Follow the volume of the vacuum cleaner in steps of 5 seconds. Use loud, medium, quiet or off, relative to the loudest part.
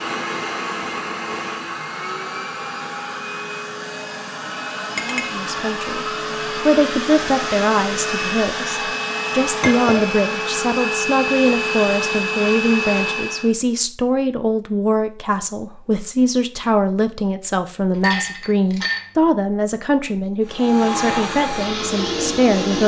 medium, loud, loud, off, loud.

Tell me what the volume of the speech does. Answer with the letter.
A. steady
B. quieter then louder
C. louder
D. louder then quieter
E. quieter
A.